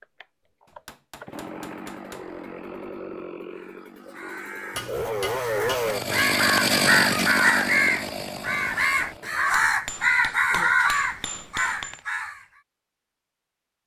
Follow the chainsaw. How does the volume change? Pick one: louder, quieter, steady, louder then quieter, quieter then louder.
louder then quieter.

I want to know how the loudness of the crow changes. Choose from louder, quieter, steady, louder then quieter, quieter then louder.
louder.